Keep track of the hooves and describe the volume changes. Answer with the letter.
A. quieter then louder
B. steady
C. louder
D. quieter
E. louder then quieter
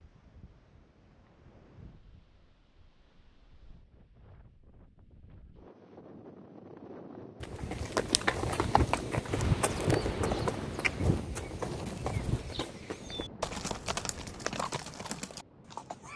D.